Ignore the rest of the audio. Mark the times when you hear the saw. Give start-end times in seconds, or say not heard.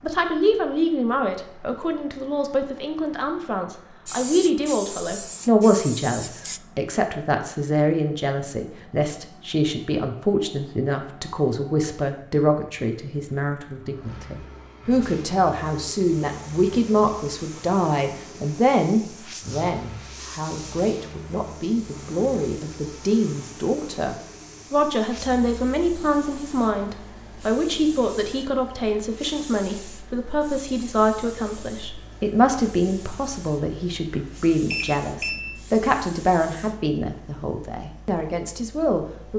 not heard.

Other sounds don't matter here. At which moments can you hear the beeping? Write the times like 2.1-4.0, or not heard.
34.7-35.5.